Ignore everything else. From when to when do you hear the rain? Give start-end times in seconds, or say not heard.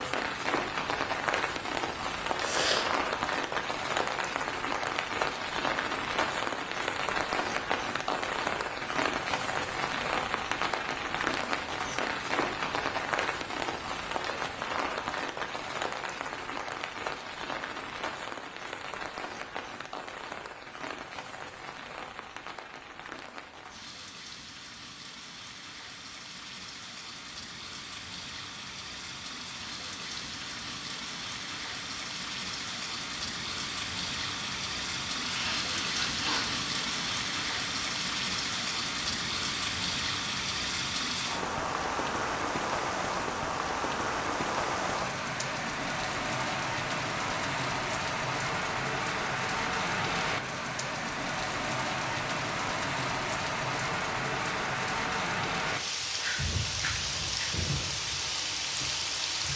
0.0-59.5.